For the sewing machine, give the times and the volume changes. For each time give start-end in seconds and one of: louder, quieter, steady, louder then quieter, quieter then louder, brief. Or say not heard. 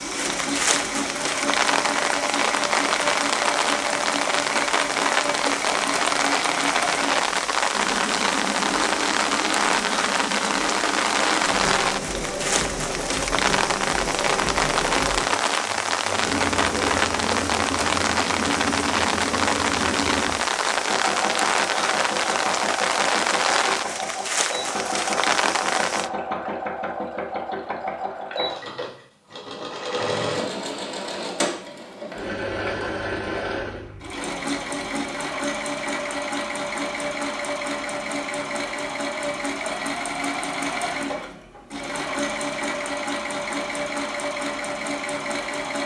0.0-45.8 steady.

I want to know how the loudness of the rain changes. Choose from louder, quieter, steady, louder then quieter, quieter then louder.
steady.